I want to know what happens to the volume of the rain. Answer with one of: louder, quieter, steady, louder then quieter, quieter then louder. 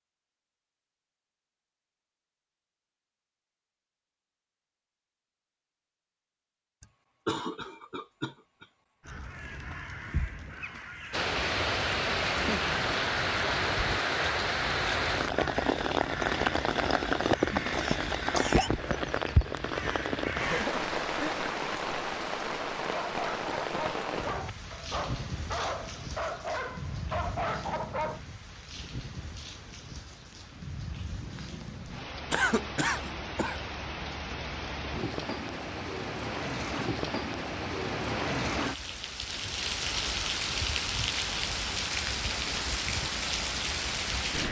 quieter then louder.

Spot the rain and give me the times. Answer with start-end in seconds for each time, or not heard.
11.1-44.4.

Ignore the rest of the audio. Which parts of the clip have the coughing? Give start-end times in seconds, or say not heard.
6.8-9.1, 17.8-18.7, 32.3-33.6.